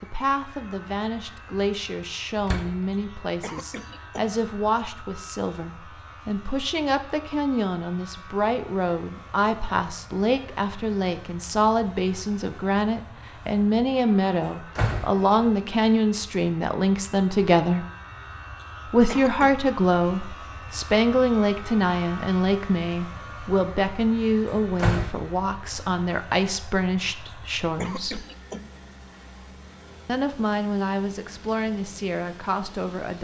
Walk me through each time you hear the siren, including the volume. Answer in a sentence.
The siren can't be heard in this clip.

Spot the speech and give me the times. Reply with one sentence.
The speech can be heard from 0.0 to 17.9 s, from 18.9 to 28.2 s and from 30.1 to 33.1 s.